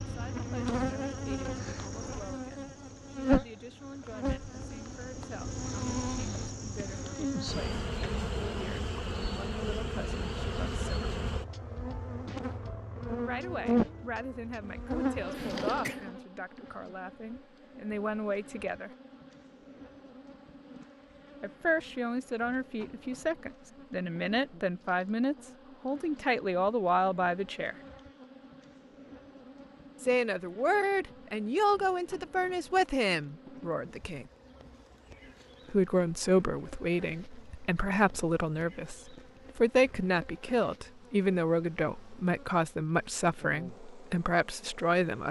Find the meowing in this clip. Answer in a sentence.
The meowing can't be heard in this clip.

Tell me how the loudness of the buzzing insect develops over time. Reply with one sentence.
The loudness of the buzzing insect goes down.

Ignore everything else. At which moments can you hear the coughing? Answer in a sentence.
The coughing can be heard from 15.3 to 16.0 s.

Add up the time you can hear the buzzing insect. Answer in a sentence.
You can hear the buzzing insect for 45 seconds altogether.